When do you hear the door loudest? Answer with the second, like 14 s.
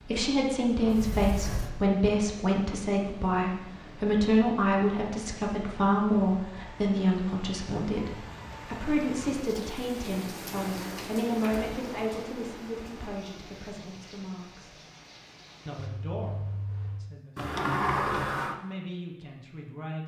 18 s.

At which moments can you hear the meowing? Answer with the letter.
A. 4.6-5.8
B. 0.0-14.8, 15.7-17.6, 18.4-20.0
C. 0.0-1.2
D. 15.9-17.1
D.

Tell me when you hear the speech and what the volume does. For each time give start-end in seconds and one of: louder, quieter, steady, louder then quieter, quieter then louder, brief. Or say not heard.
0.0-14.8 quieter
15.7-17.6 brief
18.4-20.0 brief.